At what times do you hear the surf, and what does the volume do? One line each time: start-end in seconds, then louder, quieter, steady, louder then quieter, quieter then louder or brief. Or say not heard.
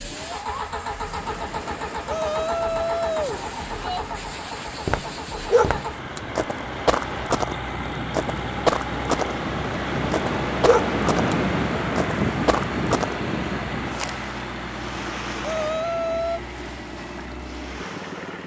0.1-18.4 louder then quieter.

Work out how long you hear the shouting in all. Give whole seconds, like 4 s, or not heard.
3 s.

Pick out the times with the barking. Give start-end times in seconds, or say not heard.
5.5-6.2, 10.6-11.3.